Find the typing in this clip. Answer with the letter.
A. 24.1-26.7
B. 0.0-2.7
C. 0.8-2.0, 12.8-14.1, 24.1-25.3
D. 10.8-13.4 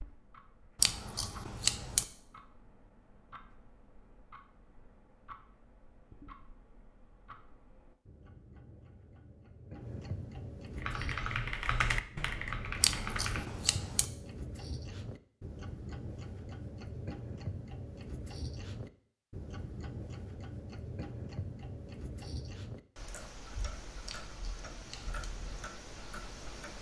D.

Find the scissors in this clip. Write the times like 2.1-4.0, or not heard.
0.8-2.0, 12.8-14.1, 24.1-25.3.